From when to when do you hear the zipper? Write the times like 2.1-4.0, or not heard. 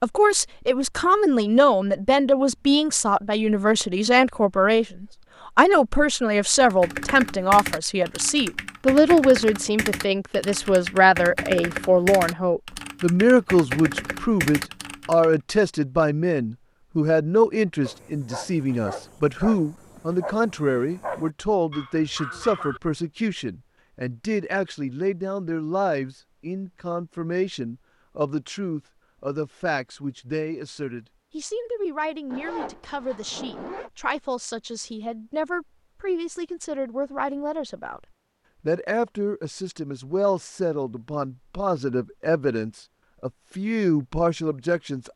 32.3-33.9.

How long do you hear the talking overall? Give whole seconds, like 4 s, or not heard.
45 s.